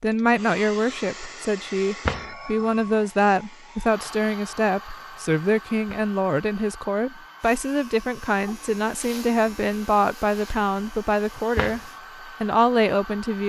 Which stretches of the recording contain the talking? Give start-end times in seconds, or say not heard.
0.0-11.8, 12.4-13.4.